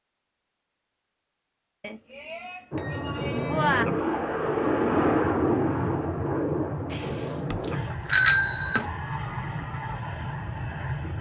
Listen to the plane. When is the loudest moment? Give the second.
5 s.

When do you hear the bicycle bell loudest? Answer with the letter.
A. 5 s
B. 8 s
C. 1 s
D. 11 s
B.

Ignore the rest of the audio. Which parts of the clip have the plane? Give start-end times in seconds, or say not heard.
2.7-11.1.